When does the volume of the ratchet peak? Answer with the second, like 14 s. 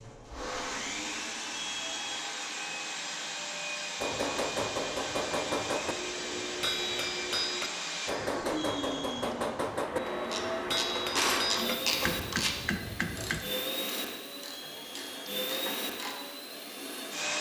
12 s.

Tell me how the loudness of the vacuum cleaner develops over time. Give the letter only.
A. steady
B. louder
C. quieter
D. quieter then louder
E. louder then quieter
A.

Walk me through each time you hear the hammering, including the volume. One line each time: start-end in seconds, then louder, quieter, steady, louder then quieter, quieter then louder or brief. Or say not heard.
4.0-13.4 steady.